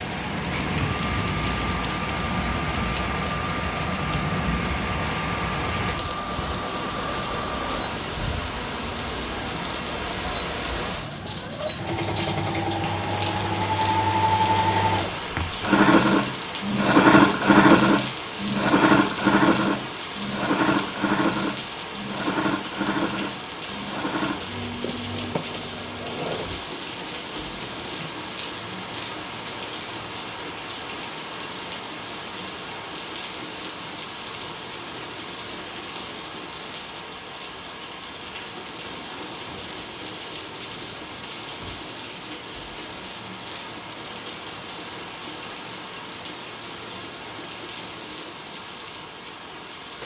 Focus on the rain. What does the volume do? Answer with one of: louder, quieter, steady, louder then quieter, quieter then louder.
quieter.